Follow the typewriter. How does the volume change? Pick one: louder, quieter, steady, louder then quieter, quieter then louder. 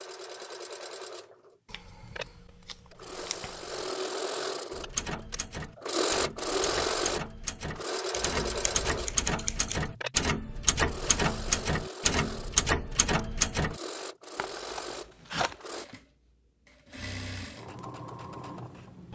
louder.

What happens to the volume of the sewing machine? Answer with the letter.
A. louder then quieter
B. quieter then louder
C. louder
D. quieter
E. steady
A.